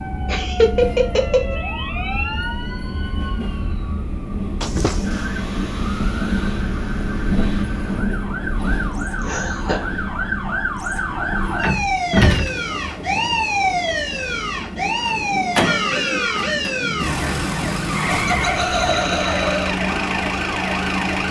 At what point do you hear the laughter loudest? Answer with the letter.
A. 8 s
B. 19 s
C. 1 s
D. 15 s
C.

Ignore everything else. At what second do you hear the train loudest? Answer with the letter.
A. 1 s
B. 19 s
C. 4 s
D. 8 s
D.